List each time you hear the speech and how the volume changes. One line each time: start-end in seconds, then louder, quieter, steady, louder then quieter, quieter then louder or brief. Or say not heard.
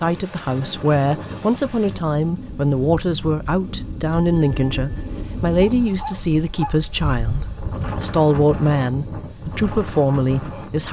0.0-10.8 steady.